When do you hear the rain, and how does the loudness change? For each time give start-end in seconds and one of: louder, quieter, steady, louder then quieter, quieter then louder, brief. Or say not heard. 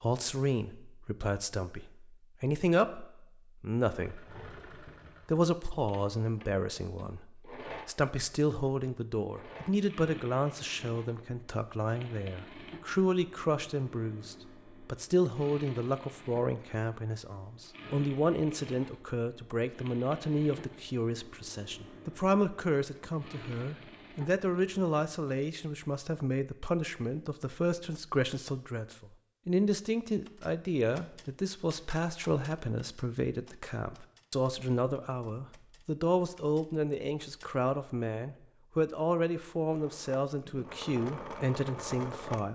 not heard.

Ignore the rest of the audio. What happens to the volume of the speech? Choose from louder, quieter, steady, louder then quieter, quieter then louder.
steady.